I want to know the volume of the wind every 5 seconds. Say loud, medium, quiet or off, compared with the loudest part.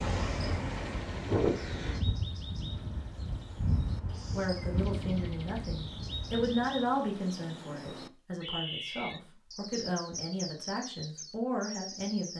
loud, medium, off.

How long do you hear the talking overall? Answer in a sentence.
You can hear the talking for 8 seconds altogether.